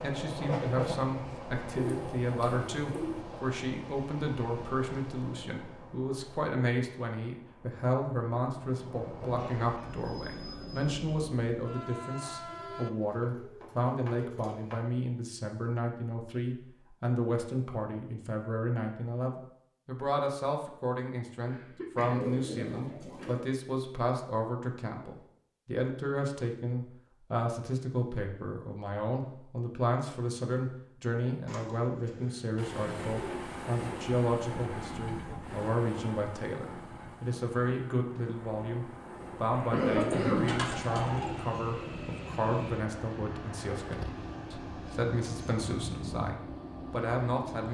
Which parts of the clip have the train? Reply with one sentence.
You can hear the train from 0.0 to 12.9 s and from 32.5 to 47.7 s.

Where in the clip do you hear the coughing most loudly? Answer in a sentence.
The volume of the coughing peaks at 40 seconds.